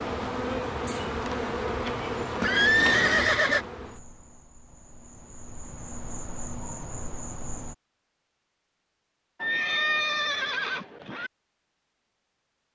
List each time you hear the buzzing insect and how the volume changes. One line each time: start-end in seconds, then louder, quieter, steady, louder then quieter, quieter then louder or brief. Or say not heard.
0.0-7.8 quieter then louder.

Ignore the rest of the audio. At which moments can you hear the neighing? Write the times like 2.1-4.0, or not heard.
2.4-3.6, 9.4-11.3.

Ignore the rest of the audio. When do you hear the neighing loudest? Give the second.
3 s.